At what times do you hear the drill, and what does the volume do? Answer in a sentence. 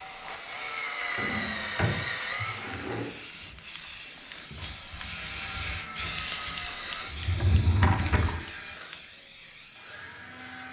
You can hear the drill from 0.0 to 10.6 s, getting quieter.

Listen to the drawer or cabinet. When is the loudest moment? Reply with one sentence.
The volume of the drawer or cabinet peaks at 8 seconds.